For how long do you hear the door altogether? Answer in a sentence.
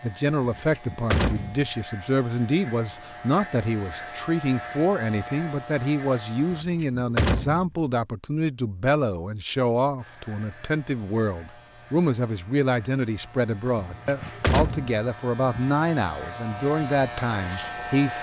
You can hear the door for 4 seconds altogether.